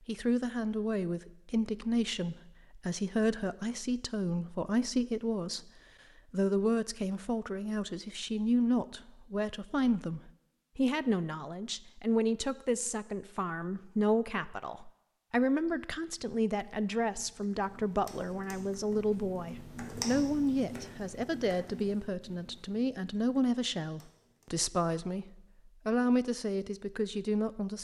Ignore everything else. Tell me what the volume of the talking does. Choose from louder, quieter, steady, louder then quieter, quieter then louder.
steady.